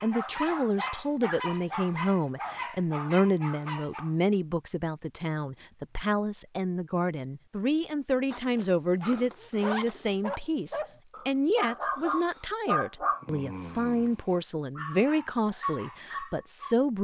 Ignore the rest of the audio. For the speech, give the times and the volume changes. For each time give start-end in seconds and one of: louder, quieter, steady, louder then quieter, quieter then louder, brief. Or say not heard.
0.0-17.0 steady.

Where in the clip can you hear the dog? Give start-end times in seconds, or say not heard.
0.0-4.2, 9.0-16.8.